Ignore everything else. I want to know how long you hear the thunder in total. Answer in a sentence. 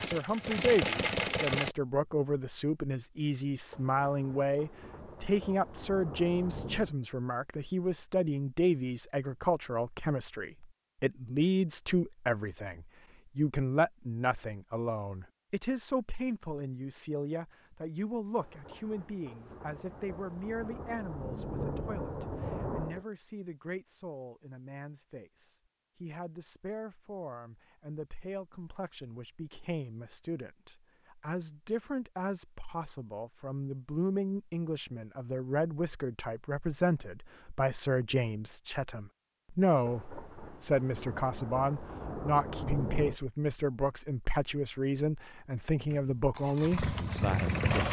You can hear the thunder for 11 seconds altogether.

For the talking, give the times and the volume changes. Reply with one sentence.
You can hear the talking from 0.0 to 47.8 s, getting quieter then louder.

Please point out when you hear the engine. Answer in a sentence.
You can hear the engine from 0.0 to 1.8 s and from 45.9 to 47.8 s.